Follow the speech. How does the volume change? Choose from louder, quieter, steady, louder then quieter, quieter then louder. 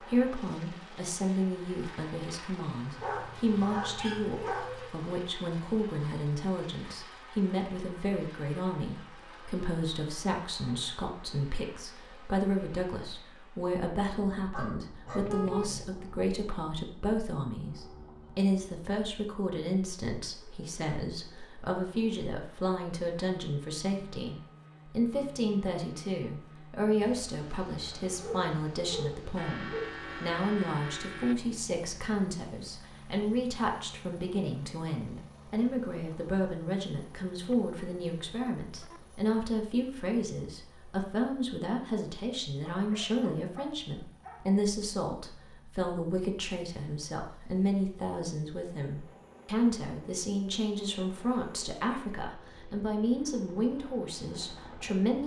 steady.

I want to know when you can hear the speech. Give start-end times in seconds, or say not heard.
0.0-55.2.